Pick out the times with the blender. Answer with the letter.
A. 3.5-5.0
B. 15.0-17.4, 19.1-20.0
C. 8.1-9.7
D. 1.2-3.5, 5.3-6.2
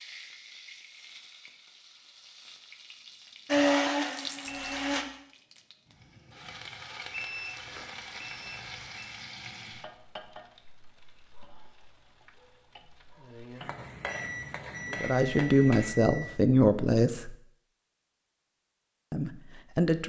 A.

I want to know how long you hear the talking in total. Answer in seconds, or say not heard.
3 s.